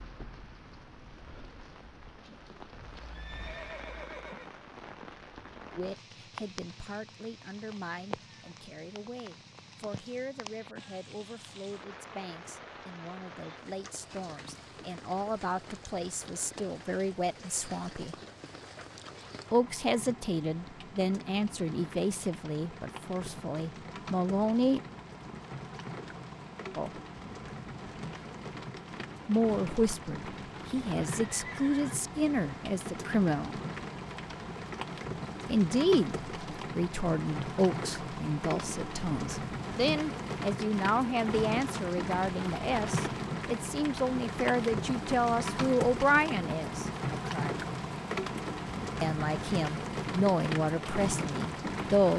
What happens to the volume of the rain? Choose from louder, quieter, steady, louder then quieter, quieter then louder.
louder.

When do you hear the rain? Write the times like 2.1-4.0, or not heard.
0.0-52.1.